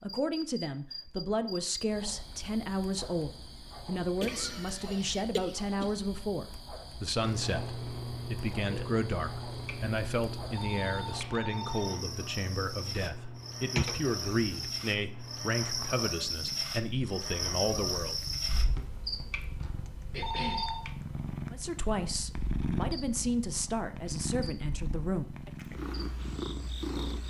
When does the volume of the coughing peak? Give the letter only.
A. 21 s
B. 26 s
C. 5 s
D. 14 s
D.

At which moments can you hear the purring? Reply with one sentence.
The purring can be heard from 7.2 to 27.2 s.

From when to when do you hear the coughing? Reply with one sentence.
You can hear the coughing from 4.2 to 5.9 s, from 13.8 to 14.7 s and from 20.1 to 20.7 s.